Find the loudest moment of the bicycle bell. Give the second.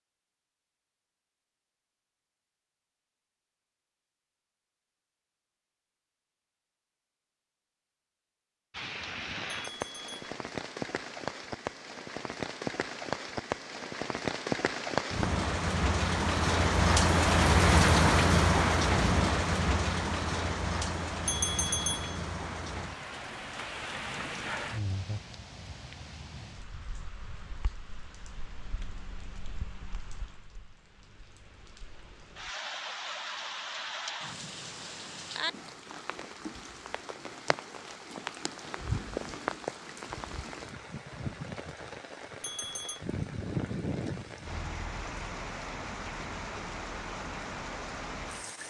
22 s.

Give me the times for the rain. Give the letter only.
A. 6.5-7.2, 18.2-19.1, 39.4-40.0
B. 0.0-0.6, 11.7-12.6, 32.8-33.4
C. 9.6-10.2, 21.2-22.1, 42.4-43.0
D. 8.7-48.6
D.